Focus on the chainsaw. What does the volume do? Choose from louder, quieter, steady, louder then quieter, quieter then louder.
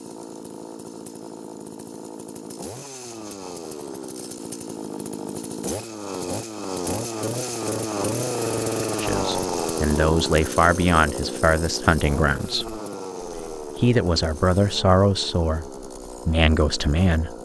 louder then quieter.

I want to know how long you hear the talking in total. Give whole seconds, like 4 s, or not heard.
8 s.